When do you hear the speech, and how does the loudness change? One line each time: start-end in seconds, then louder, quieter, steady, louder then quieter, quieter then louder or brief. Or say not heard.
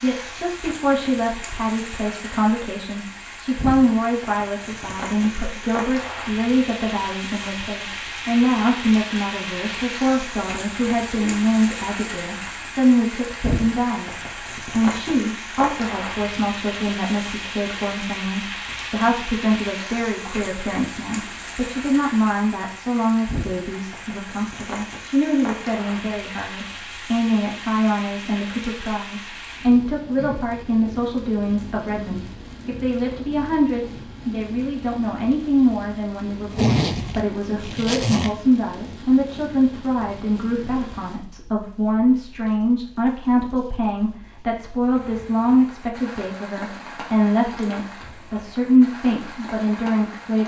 0.0-50.4 steady.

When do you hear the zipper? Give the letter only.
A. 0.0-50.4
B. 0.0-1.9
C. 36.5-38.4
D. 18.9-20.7
C.